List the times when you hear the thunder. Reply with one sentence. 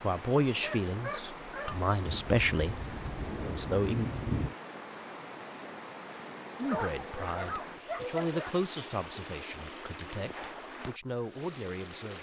You can hear the thunder from 2.0 to 4.5 s.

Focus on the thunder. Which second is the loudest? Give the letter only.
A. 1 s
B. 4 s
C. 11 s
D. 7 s
B.